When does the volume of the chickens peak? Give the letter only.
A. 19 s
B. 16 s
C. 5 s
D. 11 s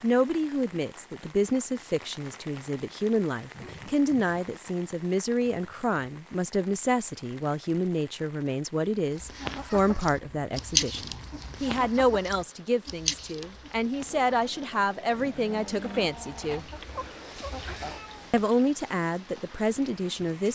D.